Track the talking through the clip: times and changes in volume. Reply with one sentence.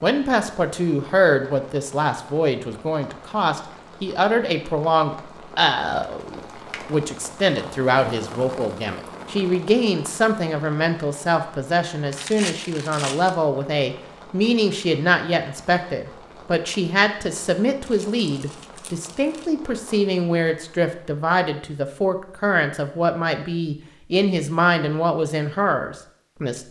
The talking can be heard from 0.0 to 26.6 s, at a steady volume.